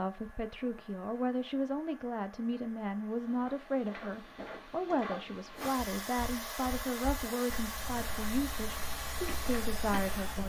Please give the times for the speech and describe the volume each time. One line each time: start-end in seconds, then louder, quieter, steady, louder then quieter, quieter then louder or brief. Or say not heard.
0.0-10.4 steady.